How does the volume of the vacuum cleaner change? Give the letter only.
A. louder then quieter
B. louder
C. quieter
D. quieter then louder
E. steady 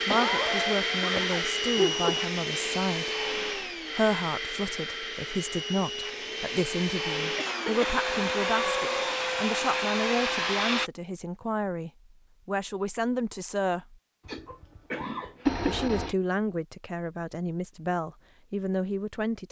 D.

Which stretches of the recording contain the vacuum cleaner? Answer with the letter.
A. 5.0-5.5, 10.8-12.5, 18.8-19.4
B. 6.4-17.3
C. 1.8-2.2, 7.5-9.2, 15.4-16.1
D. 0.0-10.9
D.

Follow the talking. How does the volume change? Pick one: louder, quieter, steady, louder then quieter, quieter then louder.
steady.